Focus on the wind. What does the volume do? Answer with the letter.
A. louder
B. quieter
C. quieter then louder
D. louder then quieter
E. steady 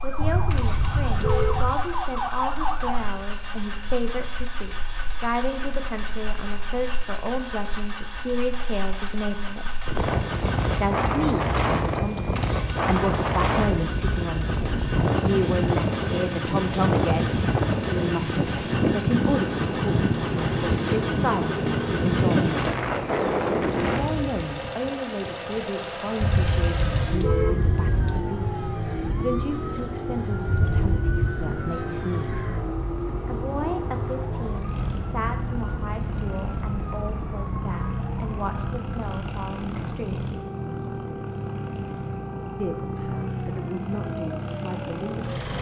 A.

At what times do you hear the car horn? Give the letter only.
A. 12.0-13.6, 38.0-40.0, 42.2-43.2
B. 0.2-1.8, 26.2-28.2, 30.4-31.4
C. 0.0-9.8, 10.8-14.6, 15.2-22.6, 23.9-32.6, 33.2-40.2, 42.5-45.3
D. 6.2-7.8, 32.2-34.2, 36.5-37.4
B.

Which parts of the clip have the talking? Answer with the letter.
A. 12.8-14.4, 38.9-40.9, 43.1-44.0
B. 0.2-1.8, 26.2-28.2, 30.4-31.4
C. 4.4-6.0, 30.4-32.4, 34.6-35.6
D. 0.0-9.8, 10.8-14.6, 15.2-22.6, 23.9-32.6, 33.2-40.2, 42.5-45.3
D.